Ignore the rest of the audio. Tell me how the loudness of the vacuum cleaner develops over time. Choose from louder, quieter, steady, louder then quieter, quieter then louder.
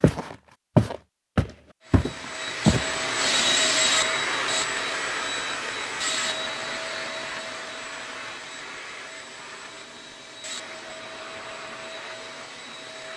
quieter.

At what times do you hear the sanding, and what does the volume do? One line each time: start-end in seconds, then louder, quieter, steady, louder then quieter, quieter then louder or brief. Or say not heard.
not heard.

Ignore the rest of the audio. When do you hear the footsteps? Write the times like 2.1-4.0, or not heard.
0.0-2.9.